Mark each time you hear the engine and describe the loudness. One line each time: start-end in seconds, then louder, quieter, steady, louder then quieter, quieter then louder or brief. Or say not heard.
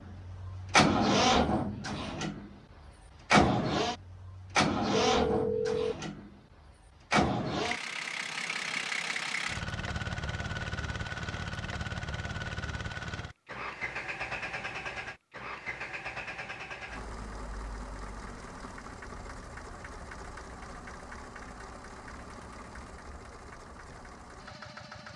0.0-25.1 quieter.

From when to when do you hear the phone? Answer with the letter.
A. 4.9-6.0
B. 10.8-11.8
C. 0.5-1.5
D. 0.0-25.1
A.